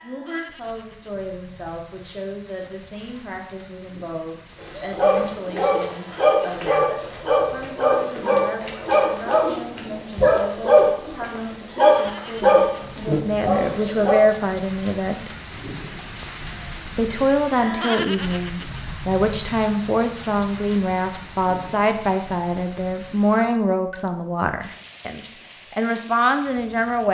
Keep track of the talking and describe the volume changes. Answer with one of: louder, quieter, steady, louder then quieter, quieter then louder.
louder.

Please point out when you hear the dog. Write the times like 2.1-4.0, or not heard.
4.6-14.2.